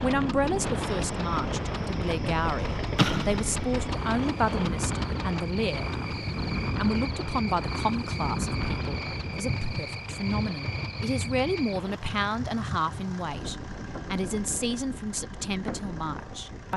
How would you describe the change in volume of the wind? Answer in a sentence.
The loudness of the wind goes down.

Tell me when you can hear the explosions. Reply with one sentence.
You can hear the explosions from 3.0 to 3.8 s.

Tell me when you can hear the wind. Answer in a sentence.
The wind can be heard from 0.0 to 16.7 s.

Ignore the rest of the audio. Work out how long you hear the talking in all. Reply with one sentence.
You can hear the talking for 16 seconds altogether.